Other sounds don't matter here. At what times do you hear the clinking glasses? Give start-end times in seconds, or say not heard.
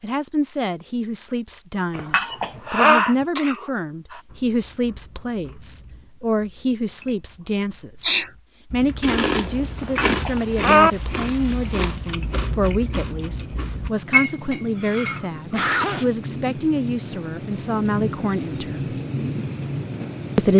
1.9-3.0, 9.8-10.9, 14.1-15.2.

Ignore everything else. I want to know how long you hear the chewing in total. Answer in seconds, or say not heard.
10 s.